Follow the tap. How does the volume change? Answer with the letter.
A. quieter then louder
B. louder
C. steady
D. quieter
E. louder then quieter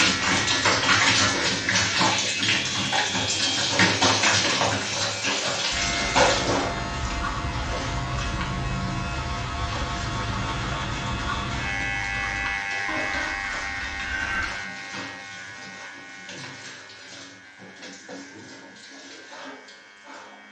D.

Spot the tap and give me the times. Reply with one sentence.
The tap can be heard from 0.0 to 20.4 s.